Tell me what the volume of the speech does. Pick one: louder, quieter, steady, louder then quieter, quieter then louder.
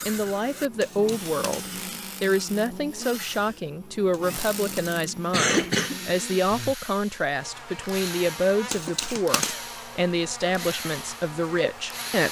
steady.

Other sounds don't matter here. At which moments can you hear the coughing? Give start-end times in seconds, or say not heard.
0.8-1.8, 4.1-6.0, 8.7-9.6.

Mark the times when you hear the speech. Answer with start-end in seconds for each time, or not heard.
0.0-12.2.